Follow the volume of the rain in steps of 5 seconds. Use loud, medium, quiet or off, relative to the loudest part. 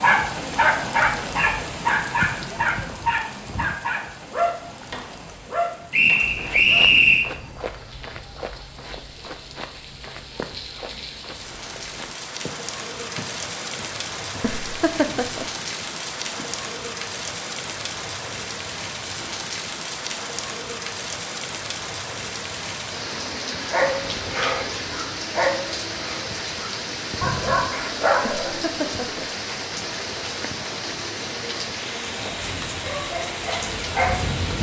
loud, quiet, loud, loud, loud, loud, loud.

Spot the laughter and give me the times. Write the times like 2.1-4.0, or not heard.
14.4-15.4, 28.4-29.3.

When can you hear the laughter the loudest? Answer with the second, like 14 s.
15 s.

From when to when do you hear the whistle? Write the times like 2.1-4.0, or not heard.
5.9-7.3.